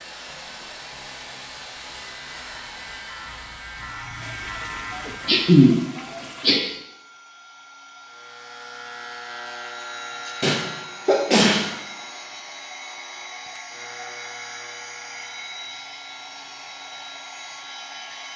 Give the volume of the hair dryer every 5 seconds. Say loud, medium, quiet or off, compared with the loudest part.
loud, medium, loud, loud.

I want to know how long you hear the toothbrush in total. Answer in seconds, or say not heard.
not heard.